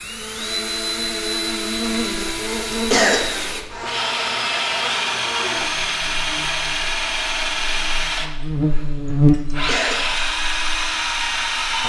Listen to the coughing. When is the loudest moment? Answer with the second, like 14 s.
3 s.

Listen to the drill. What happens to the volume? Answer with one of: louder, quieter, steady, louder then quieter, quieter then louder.
steady.